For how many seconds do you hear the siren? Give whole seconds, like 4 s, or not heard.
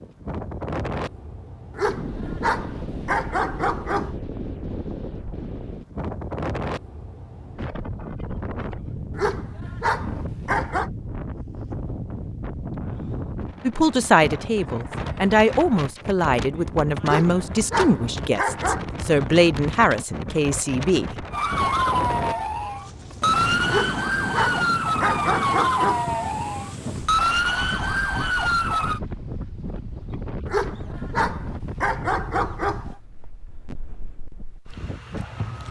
8 s.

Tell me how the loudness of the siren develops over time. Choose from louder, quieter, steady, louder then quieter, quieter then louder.
steady.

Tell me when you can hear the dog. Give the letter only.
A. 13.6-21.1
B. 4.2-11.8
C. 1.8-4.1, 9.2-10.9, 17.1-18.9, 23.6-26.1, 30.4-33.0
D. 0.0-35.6
C.